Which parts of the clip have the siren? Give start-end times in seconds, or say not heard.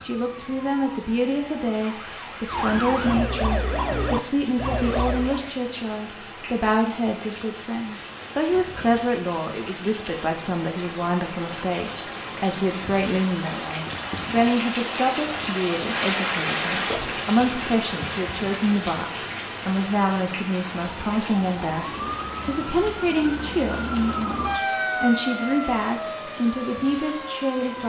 0.0-5.5, 20.8-27.8.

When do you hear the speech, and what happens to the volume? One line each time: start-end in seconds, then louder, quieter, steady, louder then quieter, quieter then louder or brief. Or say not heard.
0.0-27.8 steady.